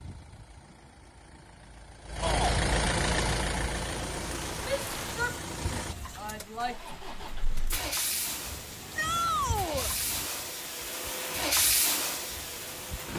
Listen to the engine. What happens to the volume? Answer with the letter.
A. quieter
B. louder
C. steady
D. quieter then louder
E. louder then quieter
D.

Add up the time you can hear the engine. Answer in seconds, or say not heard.
13 s.